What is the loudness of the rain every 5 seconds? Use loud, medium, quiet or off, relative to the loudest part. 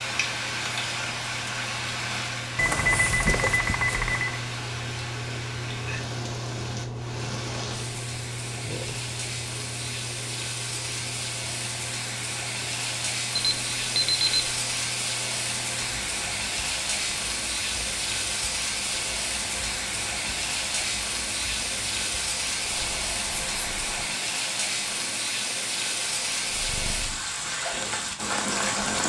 loud, medium, loud, loud, loud, loud.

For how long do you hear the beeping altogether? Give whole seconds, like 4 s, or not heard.
4 s.